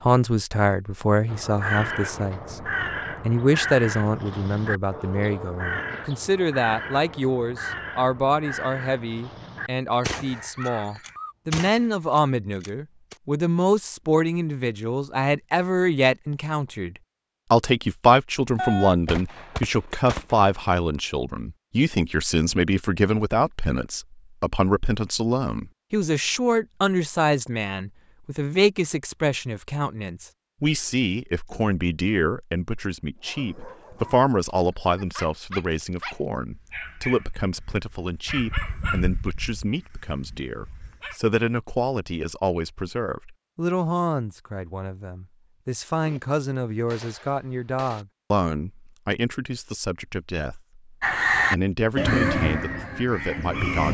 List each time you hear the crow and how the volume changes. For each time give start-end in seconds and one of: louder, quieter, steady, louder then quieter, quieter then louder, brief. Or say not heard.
1.2-11.3 quieter
51.0-53.8 brief.